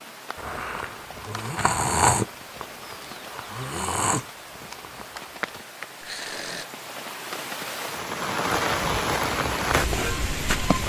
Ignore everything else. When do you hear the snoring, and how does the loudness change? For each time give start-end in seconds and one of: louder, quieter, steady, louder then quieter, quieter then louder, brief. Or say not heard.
0.3-6.7 louder then quieter.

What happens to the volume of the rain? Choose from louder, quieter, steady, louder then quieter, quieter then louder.
louder.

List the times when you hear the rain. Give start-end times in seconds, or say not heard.
0.0-10.8.